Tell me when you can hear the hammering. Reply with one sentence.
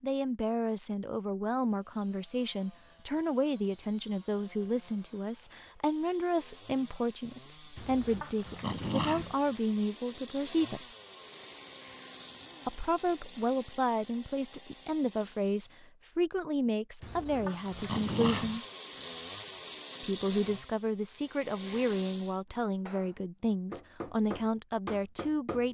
You can hear the hammering from 22.5 to 25.6 s.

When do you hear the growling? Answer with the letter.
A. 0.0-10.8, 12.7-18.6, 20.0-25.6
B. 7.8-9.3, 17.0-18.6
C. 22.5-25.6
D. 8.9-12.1
B.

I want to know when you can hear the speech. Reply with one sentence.
The speech can be heard from 0.0 to 10.8 s, from 12.7 to 18.6 s and from 20.0 to 25.6 s.